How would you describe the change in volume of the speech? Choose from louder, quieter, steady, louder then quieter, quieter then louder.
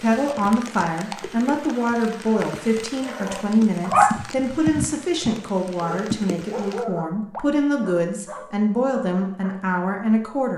steady.